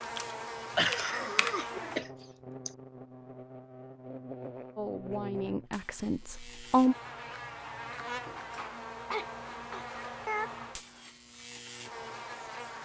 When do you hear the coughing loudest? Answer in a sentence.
The volume of the coughing peaks at 1 second.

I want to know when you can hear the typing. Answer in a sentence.
The typing can be heard from 0.0 to 1.6 s.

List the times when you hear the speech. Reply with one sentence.
You can hear the speech from 4.8 to 7.0 s.